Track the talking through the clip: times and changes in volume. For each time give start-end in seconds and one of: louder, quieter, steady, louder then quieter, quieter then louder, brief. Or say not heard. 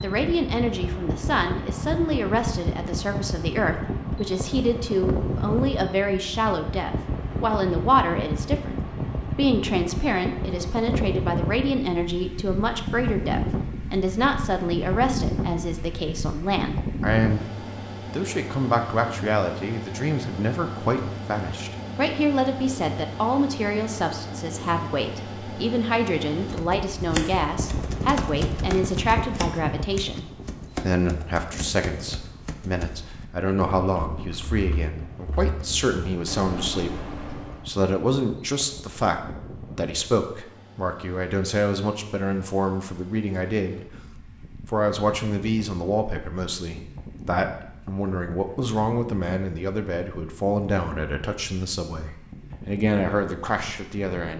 0.0-43.9 steady
44.6-54.3 steady.